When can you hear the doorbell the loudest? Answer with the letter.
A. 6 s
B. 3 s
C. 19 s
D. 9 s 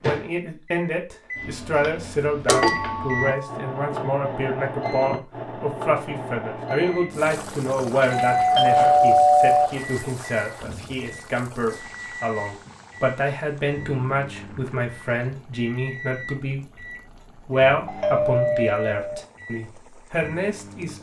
D.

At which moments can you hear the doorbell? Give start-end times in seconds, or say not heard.
2.5-3.4, 8.1-9.7, 17.9-19.2.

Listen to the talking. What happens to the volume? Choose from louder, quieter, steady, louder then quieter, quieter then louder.
steady.